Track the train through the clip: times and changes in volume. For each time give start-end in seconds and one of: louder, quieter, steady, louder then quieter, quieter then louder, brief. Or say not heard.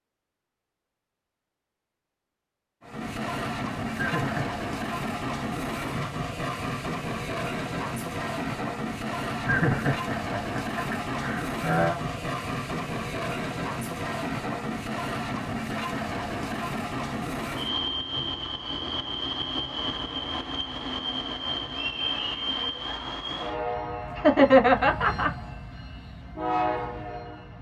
2.8-27.5 steady.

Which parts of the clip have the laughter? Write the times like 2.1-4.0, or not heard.
4.0-4.5, 9.4-12.0, 24.1-25.3.